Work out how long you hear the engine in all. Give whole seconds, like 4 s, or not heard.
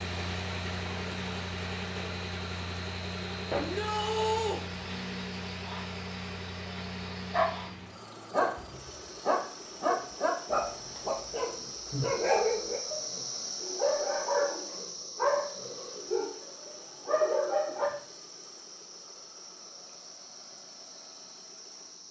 22 s.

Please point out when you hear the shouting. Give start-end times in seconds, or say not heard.
3.5-4.6.